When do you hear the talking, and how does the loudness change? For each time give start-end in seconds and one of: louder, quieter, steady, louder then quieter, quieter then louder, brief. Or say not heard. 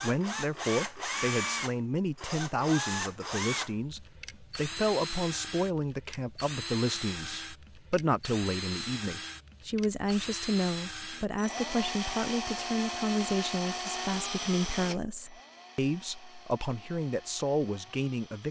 0.0-18.4 steady.